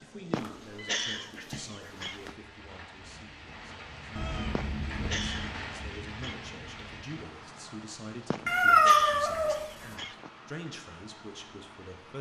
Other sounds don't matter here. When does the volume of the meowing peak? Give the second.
9 s.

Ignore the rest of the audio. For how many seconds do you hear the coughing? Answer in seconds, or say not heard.
6 s.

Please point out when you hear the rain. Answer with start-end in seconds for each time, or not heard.
0.0-12.1.